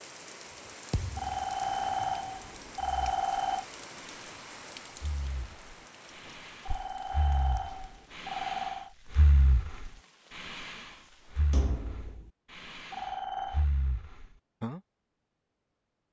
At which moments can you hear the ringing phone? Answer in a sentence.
The ringing phone can be heard from 1.1 to 3.6 s, from 6.7 to 8.9 s and from 12.9 to 13.7 s.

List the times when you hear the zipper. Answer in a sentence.
You can't hear the zipper here.